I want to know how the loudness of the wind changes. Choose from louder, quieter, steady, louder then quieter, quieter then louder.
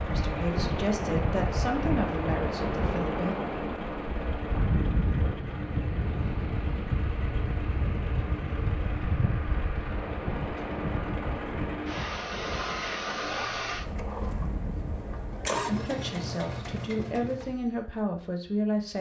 quieter.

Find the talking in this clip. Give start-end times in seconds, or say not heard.
0.0-3.4, 15.7-18.9.